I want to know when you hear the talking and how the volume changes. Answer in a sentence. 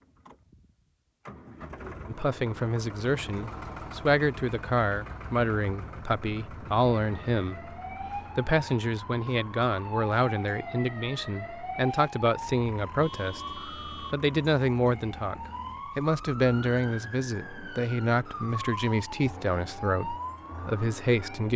The talking can be heard from 2.0 to 21.5 s, at a steady volume.